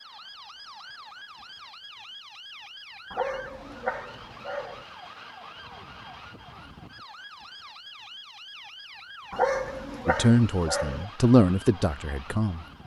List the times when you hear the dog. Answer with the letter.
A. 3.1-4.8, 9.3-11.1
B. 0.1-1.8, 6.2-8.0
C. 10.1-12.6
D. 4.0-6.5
A.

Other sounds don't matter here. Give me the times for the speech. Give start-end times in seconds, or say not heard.
10.1-12.6.